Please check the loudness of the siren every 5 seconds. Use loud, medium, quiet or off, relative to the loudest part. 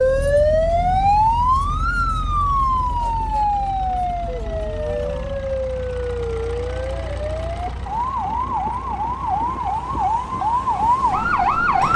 loud, medium, loud.